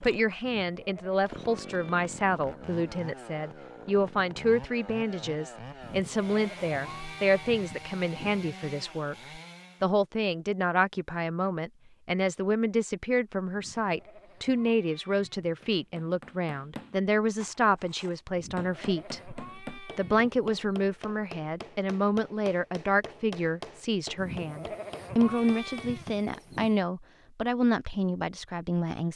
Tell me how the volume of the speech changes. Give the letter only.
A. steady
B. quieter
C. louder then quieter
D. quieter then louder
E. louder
A.